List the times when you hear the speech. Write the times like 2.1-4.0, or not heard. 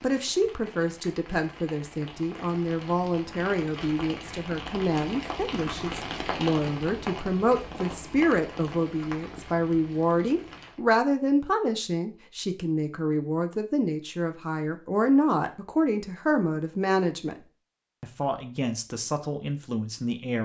0.0-17.4, 18.0-20.4.